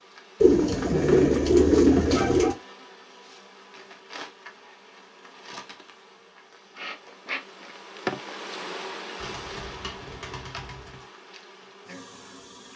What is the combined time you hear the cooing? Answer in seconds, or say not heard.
4 s.